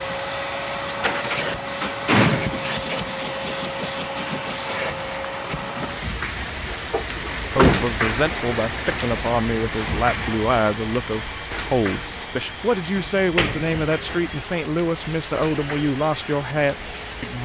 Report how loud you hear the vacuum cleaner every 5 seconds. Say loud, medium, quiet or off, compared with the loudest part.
loud, medium, medium, medium.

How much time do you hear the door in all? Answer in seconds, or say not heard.
4 s.